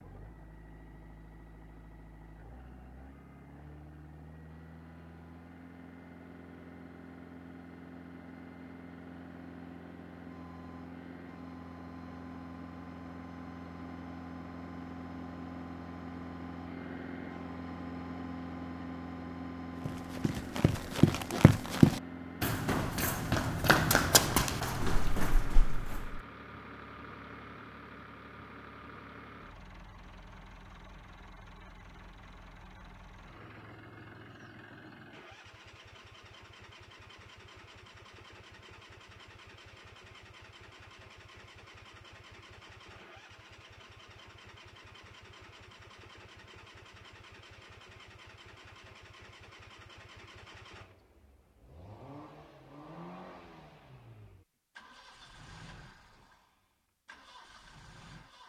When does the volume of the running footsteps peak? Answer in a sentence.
The loudest moment of the running footsteps is at 22 seconds.